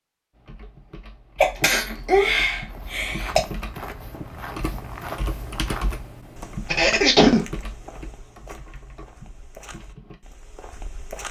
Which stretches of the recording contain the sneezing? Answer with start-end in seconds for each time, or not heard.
1.4-3.5, 6.7-7.5.